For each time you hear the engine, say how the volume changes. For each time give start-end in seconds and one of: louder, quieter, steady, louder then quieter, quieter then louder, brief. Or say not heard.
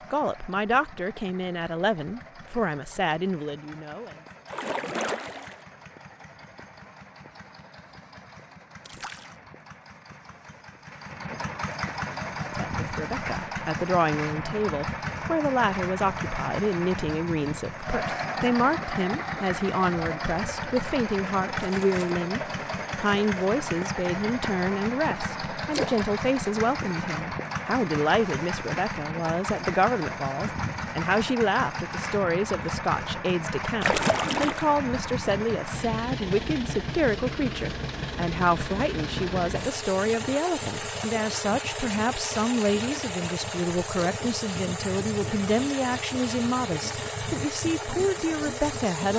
0.0-49.1 louder.